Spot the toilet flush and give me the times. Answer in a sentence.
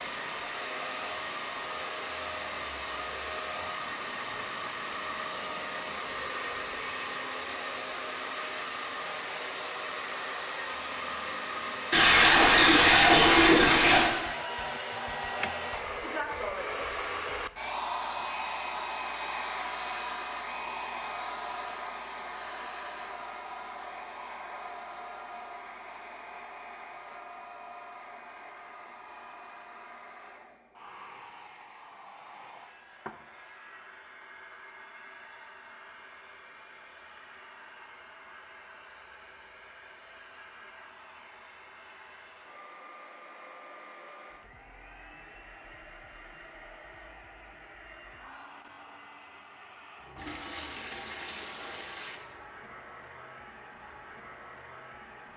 You can hear the toilet flush from 11.9 to 14.2 s and from 50.1 to 52.1 s.